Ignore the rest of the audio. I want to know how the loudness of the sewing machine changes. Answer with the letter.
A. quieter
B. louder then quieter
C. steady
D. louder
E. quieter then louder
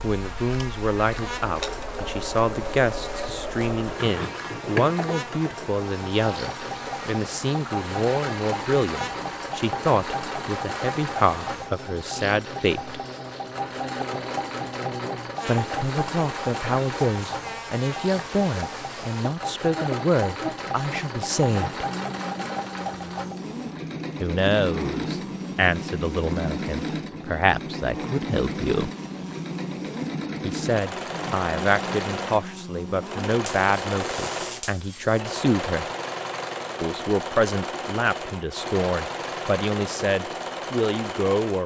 C.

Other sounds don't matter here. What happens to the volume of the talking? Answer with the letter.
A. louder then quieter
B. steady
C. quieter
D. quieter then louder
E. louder
B.